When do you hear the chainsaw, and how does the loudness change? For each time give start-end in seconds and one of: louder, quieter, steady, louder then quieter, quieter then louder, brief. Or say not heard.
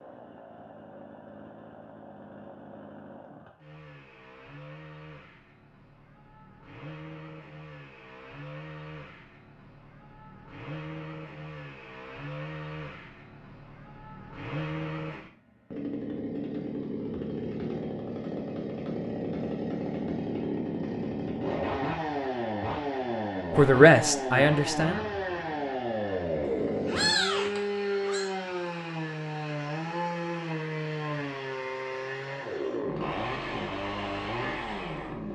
0.0-35.3 louder.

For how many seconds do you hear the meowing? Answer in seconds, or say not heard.
2 s.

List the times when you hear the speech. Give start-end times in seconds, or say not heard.
23.6-25.0.